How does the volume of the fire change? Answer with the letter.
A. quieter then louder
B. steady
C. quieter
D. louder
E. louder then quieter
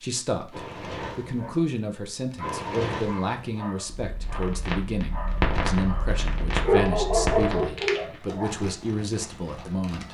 E.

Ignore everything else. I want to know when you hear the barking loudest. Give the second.
7 s.